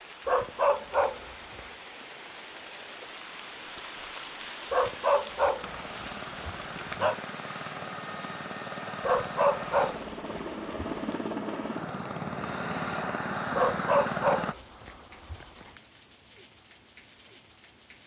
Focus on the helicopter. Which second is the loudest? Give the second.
14 s.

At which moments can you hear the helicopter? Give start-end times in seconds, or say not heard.
5.6-14.6.